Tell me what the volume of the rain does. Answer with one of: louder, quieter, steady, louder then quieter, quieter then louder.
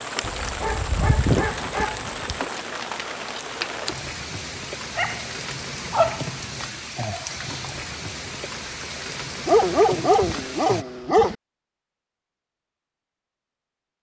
steady.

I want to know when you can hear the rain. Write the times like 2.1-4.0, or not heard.
0.0-10.8.